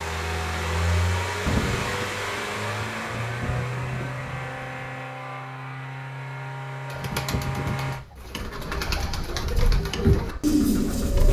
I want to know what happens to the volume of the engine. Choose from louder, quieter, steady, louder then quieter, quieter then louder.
quieter.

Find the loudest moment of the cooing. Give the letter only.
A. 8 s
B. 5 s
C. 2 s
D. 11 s
D.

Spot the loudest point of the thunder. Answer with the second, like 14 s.
2 s.